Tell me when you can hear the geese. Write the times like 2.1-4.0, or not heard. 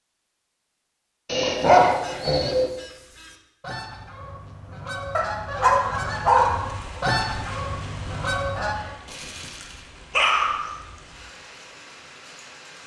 1.5-8.9.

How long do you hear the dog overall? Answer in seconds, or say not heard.
5 s.